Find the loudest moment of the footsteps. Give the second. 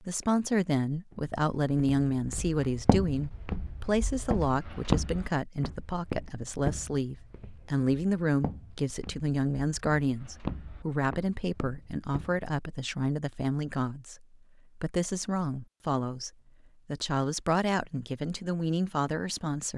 5 s.